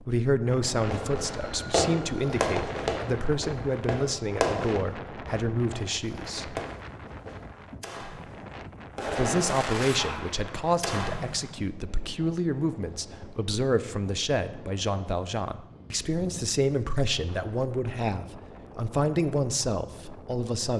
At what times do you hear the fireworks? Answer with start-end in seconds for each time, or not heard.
0.8-11.5.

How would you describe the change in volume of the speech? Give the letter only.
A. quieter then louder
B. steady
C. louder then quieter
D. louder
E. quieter
B.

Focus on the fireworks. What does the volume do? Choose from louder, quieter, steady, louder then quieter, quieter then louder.
quieter then louder.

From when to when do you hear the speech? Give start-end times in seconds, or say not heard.
0.0-6.6, 9.1-20.7.